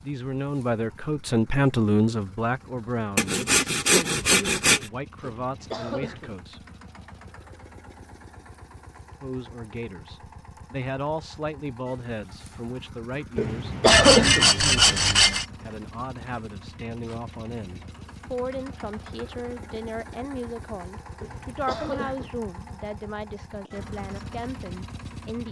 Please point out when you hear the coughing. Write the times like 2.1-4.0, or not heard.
5.3-6.3, 13.3-14.5, 21.2-22.4.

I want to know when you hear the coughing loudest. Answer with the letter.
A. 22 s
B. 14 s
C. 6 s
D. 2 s
B.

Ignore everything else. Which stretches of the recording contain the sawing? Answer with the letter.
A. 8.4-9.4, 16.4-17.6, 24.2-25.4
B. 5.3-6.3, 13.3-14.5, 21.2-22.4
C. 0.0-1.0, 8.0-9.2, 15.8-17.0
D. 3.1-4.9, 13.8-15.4
D.